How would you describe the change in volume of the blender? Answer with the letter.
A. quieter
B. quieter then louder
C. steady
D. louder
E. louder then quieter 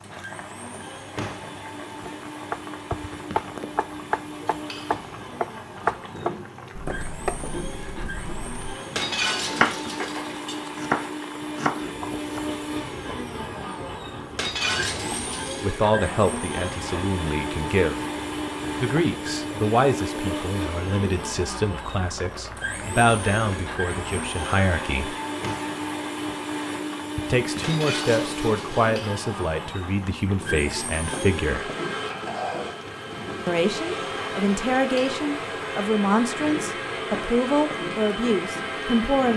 D.